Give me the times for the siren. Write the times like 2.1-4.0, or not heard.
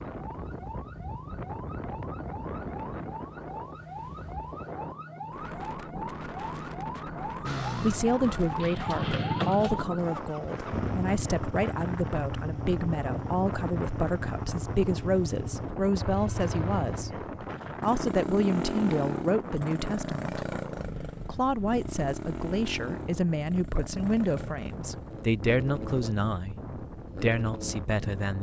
0.1-10.2.